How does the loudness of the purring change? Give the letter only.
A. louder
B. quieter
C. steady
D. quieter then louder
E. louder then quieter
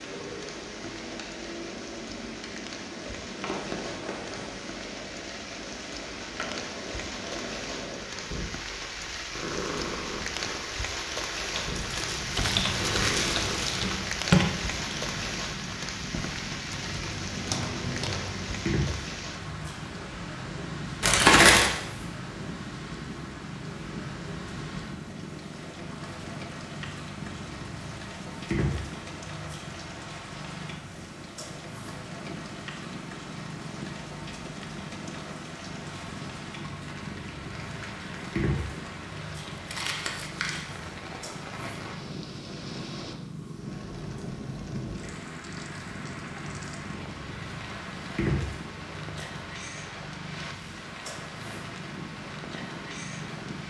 C.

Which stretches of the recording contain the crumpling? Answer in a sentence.
The crumpling can be heard from 11.8 to 13.8 s, from 21.0 to 21.7 s and from 39.6 to 40.8 s.